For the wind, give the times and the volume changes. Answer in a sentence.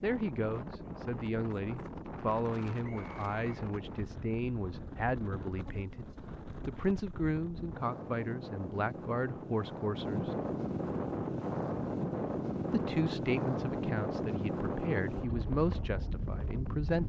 You can hear the wind from 0.0 to 17.0 s, getting louder.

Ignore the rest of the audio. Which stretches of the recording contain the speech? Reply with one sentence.
The speech can be heard from 0.0 to 10.3 s and from 12.7 to 17.0 s.